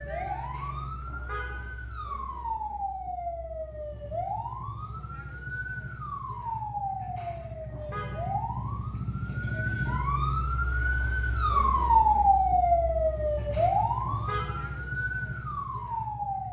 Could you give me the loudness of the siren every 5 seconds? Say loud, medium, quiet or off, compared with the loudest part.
medium, medium, loud, medium.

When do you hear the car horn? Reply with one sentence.
The car horn can be heard from 0.3 to 1.8 s, from 7.0 to 8.3 s and from 13.3 to 14.8 s.